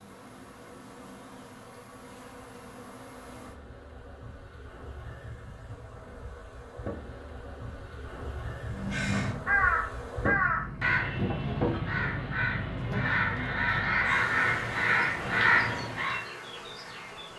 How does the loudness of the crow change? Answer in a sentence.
The volume of the crow goes down, then up.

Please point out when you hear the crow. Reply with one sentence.
The crow can be heard from 8.7 to 16.2 s.